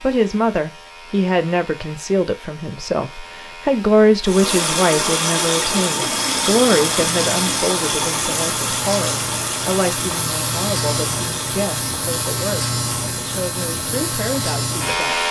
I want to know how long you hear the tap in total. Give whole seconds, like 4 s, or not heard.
11 s.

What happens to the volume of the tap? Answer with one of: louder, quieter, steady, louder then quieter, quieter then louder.
quieter.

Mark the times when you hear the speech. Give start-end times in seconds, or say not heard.
0.0-15.2.